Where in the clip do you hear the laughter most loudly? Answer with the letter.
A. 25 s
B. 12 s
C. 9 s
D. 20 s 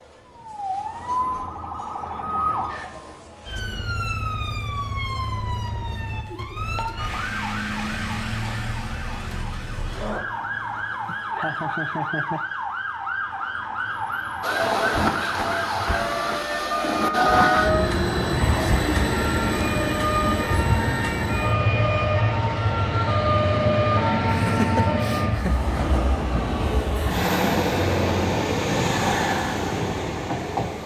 A.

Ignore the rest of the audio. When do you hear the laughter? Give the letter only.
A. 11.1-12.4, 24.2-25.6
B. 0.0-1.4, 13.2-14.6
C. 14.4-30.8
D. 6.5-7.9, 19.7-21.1
A.